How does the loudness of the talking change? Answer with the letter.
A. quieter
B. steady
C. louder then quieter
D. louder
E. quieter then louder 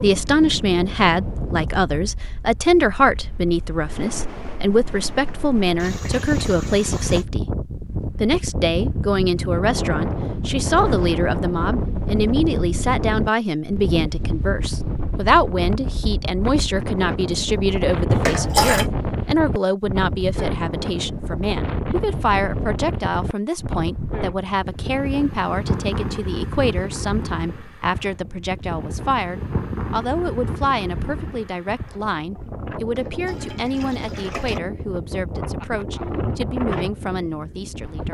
A.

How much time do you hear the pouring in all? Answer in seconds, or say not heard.
4 s.